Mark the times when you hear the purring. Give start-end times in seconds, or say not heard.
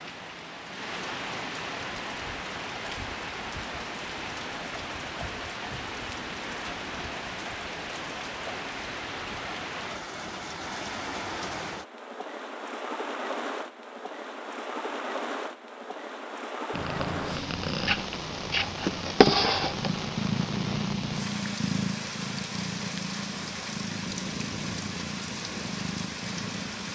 16.7-26.9.